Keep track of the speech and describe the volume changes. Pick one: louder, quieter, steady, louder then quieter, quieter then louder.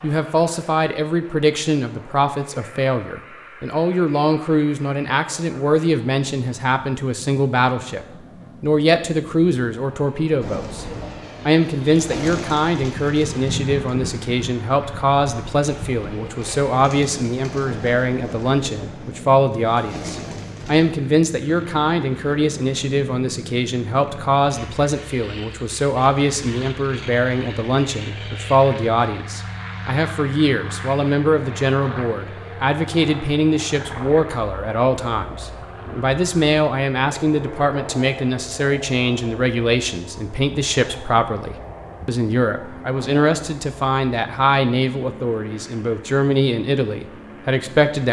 steady.